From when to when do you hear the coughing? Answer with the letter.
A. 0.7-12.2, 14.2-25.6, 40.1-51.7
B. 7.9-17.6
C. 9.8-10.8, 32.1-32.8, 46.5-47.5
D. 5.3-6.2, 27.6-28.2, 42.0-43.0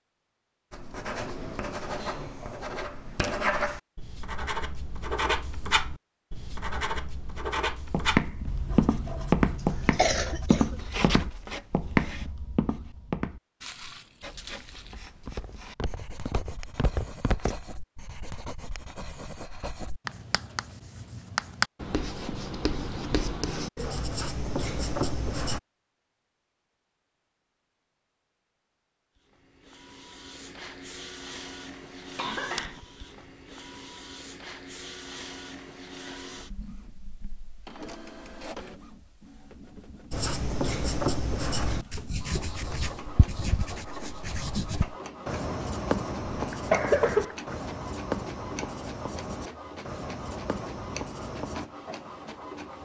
C.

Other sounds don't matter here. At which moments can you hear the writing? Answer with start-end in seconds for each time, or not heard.
0.7-12.2, 14.2-25.6, 40.1-51.7.